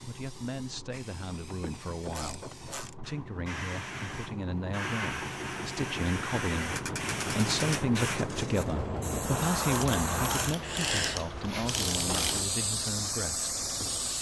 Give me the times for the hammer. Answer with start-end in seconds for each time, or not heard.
not heard.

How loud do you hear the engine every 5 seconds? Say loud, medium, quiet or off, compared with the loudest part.
medium, loud, medium.